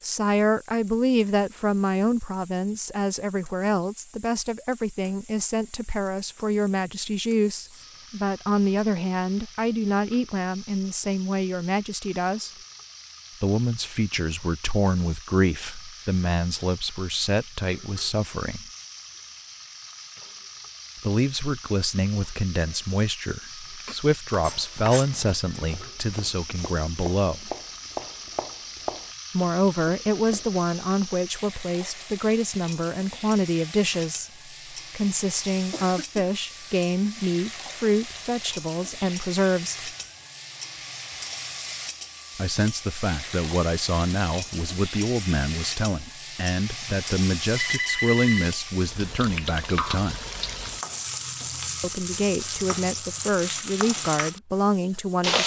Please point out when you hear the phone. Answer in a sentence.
You can hear the phone from 47.5 to 48.5 s.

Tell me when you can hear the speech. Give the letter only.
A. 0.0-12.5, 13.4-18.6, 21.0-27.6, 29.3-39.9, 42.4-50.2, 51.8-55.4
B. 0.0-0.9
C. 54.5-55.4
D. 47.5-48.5
A.